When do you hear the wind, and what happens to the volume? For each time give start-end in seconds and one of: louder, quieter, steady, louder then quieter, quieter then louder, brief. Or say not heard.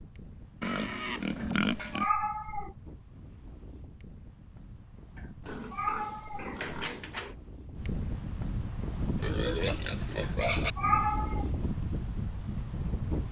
0.0-13.2 louder.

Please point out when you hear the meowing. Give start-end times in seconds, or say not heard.
1.4-2.7, 5.2-7.0, 10.2-11.4.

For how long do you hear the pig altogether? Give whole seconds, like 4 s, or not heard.
5 s.